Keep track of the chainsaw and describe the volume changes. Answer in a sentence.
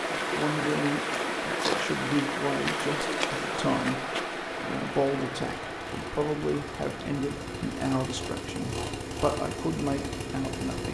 The loudness of the chainsaw goes up.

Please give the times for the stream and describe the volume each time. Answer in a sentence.
The stream can be heard from 0.0 to 10.8 s, getting quieter.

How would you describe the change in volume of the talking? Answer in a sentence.
The loudness of the talking stays about the same.